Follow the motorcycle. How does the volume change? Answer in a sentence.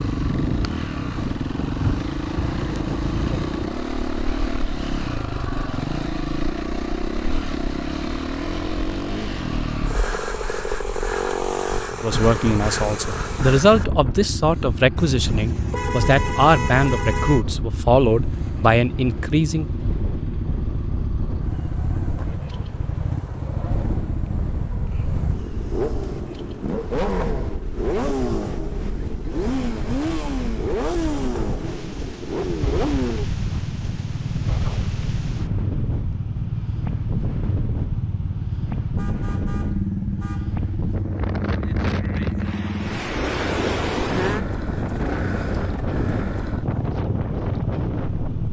The volume of the motorcycle stays about the same.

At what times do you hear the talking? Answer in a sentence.
You can hear the talking from 12.0 to 19.6 s.